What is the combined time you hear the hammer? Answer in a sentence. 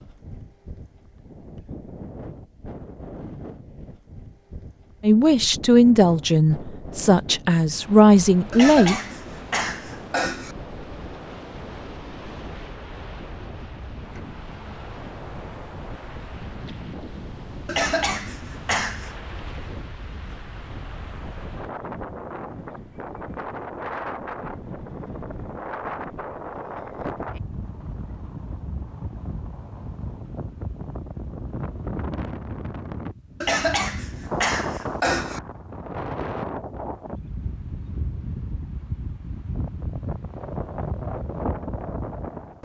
You can't hear the hammer here.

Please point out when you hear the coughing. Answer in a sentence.
The coughing can be heard from 8.5 to 10.6 s, from 17.6 to 19.1 s and from 33.4 to 35.4 s.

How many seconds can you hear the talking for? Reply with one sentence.
You can hear the talking for 4 seconds altogether.